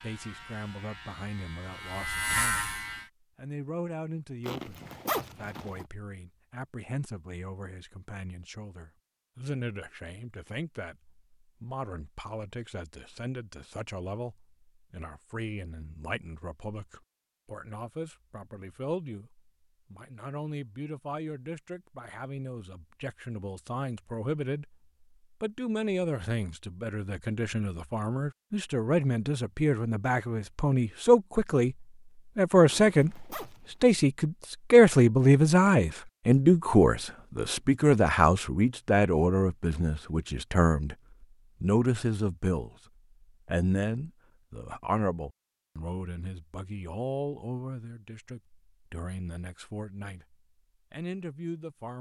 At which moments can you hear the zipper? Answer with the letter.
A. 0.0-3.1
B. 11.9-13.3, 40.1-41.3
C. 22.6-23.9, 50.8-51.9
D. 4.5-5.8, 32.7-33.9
D.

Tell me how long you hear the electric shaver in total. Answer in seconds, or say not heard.
3 s.